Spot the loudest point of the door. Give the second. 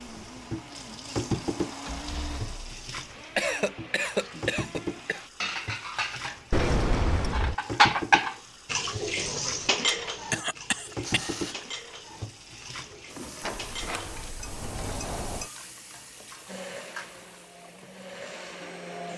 7 s.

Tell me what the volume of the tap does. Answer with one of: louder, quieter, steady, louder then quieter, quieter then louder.
quieter.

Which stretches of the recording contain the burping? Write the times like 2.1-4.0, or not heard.
not heard.